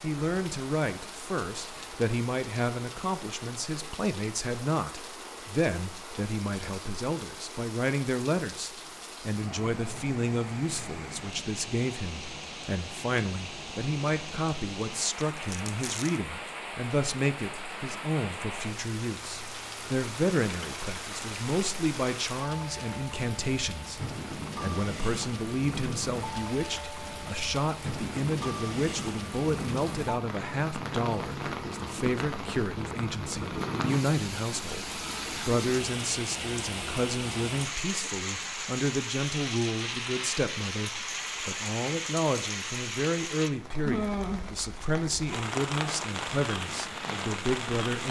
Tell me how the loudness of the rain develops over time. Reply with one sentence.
The volume of the rain goes up.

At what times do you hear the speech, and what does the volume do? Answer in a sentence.
The speech can be heard from 0.0 to 48.0 s, at a steady volume.